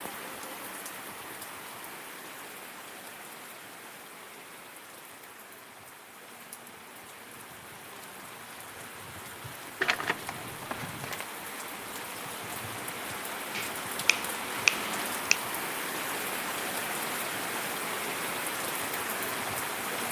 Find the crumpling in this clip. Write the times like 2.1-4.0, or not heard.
9.8-11.2.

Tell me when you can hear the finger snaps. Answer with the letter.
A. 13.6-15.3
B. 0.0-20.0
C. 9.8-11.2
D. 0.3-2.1
A.